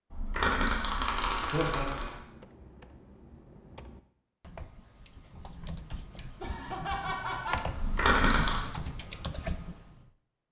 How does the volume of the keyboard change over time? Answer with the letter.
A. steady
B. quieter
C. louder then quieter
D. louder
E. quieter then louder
D.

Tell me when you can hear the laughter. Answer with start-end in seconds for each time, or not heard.
1.3-2.1, 6.4-7.6.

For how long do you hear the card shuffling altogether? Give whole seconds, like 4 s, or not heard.
3 s.